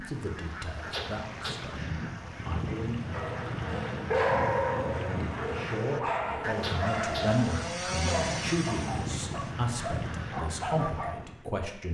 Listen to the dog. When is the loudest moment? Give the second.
4 s.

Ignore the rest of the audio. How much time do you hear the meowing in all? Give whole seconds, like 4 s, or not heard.
2 s.